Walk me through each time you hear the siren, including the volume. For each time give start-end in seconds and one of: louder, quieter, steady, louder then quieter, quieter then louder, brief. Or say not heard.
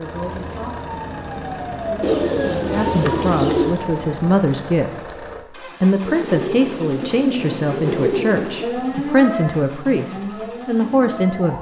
0.0-4.3 louder then quieter
8.6-11.5 brief.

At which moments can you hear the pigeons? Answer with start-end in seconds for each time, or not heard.
2.0-3.9, 6.0-8.7.